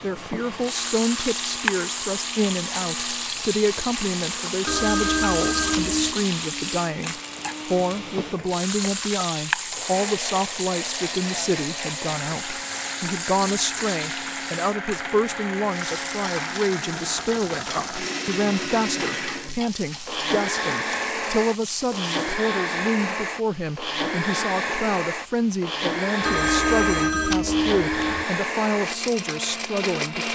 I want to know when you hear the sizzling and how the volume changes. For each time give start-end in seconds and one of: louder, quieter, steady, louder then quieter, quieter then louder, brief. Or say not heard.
0.0-22.4 quieter.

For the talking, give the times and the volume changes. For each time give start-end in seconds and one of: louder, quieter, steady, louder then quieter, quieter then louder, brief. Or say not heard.
0.0-30.2 steady.